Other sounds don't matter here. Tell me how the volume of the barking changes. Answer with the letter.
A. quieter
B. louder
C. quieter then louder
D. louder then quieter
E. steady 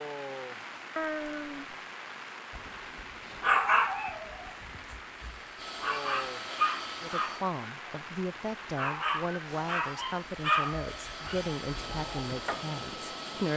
A.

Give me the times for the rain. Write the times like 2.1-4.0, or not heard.
0.0-13.5.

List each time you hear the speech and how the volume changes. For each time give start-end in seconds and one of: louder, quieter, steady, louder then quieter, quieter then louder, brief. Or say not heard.
7.0-13.5 steady.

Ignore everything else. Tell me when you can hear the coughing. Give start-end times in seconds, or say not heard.
not heard.